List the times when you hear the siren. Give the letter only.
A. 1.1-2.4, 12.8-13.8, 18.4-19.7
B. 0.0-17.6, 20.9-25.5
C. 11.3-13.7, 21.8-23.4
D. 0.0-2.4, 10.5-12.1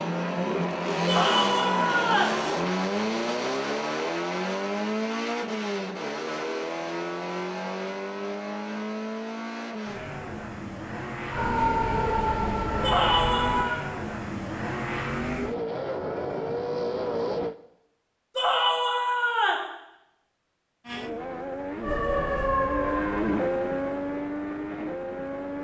C.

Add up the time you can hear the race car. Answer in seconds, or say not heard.
22 s.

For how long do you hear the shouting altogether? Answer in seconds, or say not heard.
4 s.